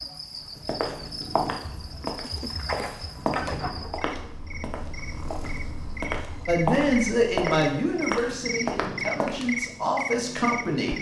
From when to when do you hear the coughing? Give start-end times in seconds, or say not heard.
2.2-4.0.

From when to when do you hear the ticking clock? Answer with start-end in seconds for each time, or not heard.
not heard.